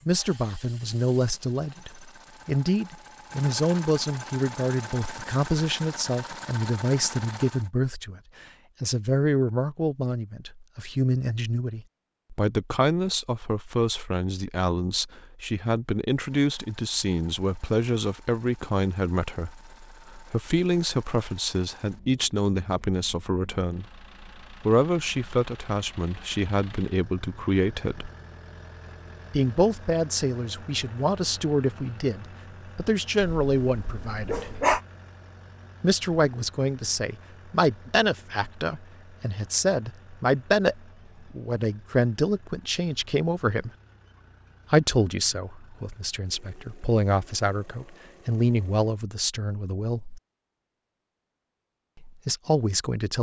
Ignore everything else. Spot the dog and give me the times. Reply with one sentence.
The dog can be heard from 33.2 to 34.8 s.